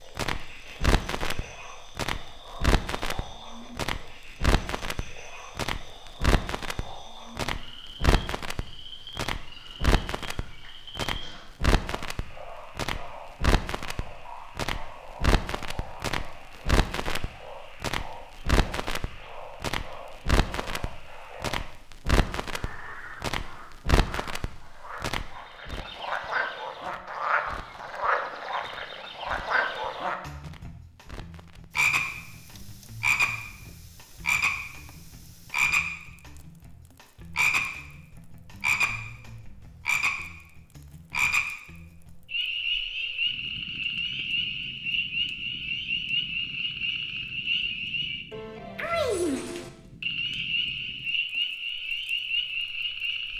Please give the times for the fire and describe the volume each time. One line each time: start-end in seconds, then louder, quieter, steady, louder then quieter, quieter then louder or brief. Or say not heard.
0.0-53.3 quieter then louder.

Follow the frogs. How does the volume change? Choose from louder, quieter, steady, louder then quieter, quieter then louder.
louder.